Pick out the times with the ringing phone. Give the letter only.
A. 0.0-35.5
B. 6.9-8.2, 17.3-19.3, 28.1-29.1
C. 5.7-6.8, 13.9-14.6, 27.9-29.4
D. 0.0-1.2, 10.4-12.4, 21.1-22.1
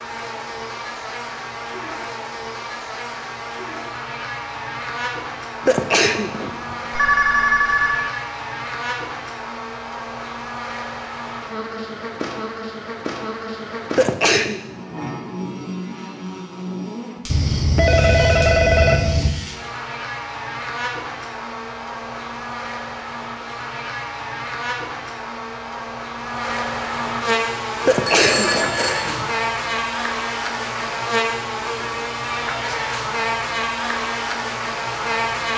B.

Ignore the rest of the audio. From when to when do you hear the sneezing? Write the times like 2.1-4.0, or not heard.
5.7-6.8, 13.9-14.6, 27.9-29.4.